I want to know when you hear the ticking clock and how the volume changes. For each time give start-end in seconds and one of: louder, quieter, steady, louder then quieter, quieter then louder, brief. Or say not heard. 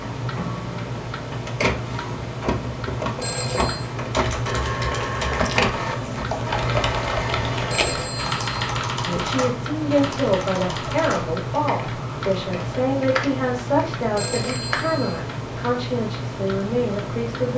0.0-17.5 steady.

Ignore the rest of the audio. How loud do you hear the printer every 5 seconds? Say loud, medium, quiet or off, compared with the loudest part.
loud, loud, off, off.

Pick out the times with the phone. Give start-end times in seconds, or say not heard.
3.2-3.9, 7.7-8.6, 14.2-15.2.